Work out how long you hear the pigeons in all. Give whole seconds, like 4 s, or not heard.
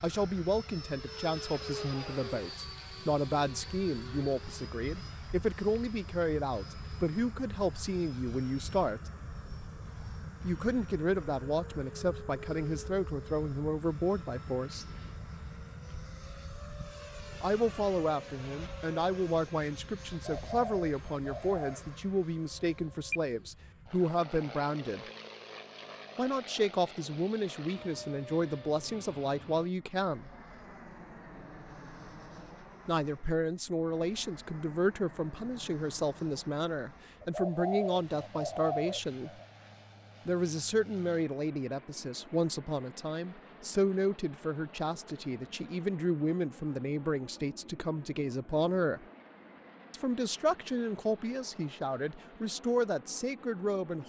4 s.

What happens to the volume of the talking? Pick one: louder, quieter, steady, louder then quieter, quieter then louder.
steady.